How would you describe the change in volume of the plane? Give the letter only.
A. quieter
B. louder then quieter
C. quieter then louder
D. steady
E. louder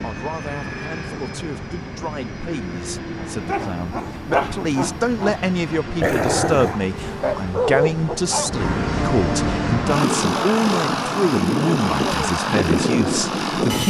E.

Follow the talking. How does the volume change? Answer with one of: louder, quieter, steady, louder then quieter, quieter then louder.
louder.